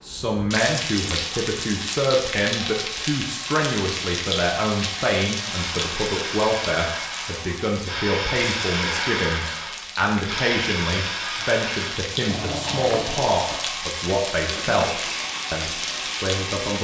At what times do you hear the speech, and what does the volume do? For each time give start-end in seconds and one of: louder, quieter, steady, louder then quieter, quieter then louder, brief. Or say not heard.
0.0-16.7 steady.